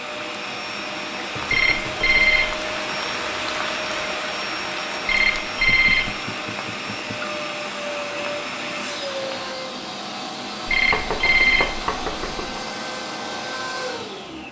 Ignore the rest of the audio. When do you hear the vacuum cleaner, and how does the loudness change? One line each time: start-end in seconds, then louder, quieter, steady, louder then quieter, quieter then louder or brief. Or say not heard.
0.0-14.4 steady.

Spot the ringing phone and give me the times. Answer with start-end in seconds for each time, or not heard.
1.5-2.5, 5.0-6.1, 10.7-11.8.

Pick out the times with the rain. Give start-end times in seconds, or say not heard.
0.0-9.6.